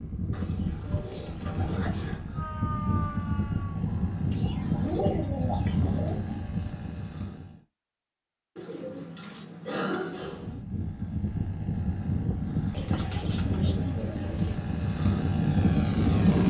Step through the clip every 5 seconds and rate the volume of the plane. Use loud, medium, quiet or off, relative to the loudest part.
medium, medium, medium, loud.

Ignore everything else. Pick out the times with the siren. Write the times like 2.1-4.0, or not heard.
2.3-6.4.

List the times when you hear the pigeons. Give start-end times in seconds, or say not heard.
0.3-2.2, 4.3-6.2, 8.6-10.6, 12.7-14.7.